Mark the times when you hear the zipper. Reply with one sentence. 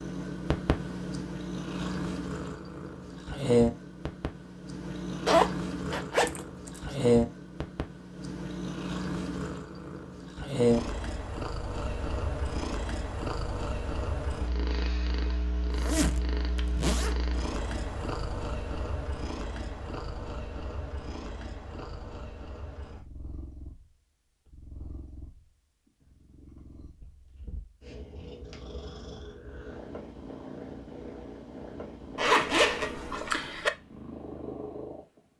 You can hear the zipper from 5.2 to 6.8 s, from 15.7 to 17.3 s and from 32.1 to 33.7 s.